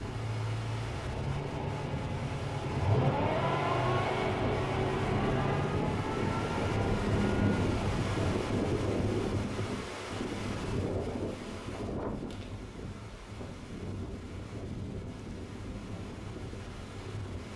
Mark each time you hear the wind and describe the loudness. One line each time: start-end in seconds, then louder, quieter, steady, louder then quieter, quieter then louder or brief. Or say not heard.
0.0-17.5 louder then quieter.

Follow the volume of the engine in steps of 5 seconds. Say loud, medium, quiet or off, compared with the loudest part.
loud, loud, off, off.